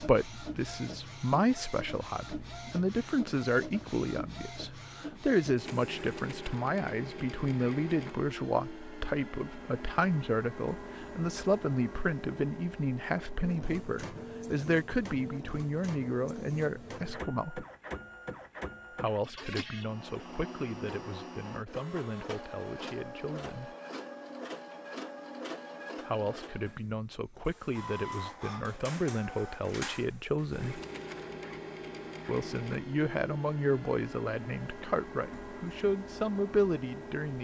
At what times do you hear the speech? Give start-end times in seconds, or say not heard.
0.0-17.6, 18.9-23.8, 26.1-30.8, 32.2-37.4.